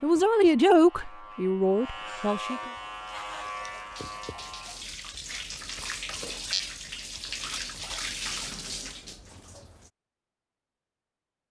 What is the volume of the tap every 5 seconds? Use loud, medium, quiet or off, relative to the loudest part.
medium, loud, off.